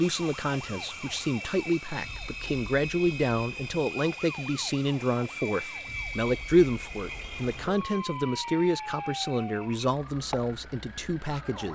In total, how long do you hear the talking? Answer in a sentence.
You can hear the talking for 12 seconds altogether.